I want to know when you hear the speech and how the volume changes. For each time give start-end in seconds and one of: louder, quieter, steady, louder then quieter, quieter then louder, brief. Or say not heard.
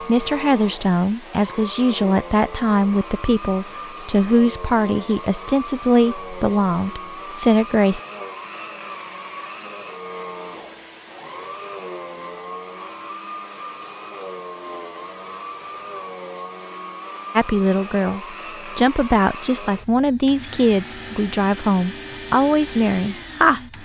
0.0-8.0 steady
17.4-23.6 steady.